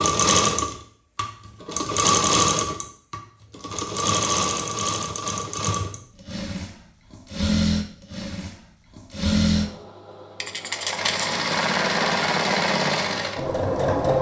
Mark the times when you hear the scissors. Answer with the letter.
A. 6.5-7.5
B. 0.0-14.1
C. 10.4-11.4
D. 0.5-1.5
C.